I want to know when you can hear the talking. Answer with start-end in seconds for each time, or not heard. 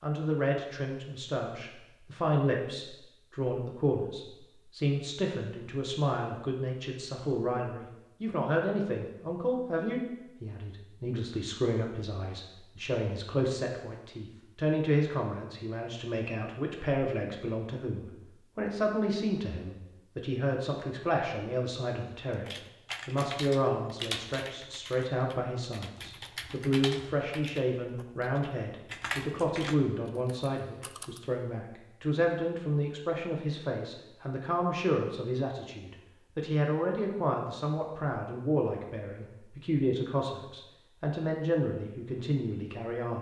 0.0-22.4, 23.1-43.1.